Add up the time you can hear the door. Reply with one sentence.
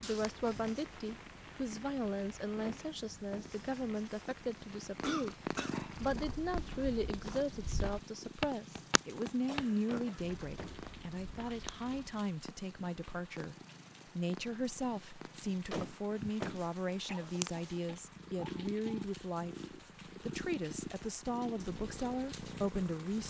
The door can be heard for 3 seconds in total.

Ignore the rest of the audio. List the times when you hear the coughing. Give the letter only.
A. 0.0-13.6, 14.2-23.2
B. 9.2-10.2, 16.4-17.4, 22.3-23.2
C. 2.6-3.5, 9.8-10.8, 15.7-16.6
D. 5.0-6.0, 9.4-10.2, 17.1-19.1
D.